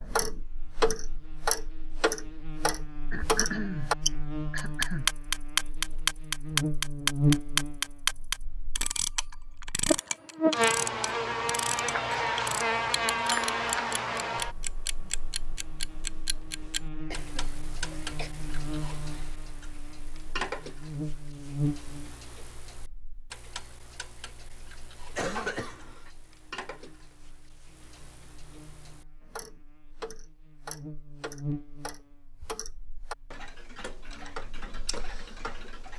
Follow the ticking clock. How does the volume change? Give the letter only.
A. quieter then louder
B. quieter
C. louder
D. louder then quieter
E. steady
A.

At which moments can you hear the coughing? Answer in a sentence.
The coughing can be heard from 3.1 to 3.9 s, from 4.5 to 5.1 s, from 17.1 to 18.3 s and from 25.1 to 26.1 s.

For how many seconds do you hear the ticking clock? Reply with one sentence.
You can hear the ticking clock for 36 seconds altogether.